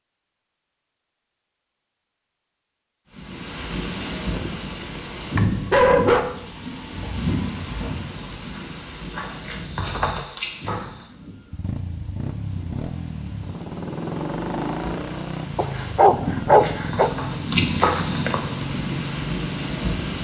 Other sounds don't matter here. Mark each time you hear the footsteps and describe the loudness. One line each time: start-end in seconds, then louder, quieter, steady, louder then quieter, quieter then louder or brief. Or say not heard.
7.0-11.1 quieter then louder
16.6-18.4 brief.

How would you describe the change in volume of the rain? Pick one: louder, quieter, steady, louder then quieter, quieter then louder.
quieter then louder.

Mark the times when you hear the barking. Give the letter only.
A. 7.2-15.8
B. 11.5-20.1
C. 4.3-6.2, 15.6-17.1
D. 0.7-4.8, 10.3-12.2
C.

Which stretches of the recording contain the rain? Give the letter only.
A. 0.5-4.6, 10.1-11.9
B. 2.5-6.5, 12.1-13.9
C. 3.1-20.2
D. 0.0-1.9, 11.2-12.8
C.